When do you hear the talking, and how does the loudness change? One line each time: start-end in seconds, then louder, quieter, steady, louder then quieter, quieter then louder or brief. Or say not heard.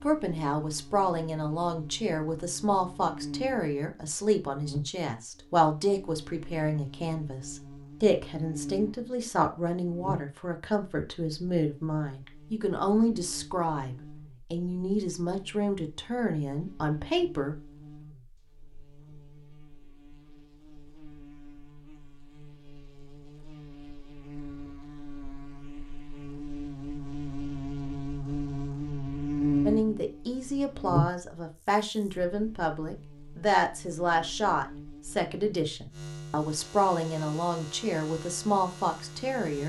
0.0-17.6 steady
29.6-39.6 steady.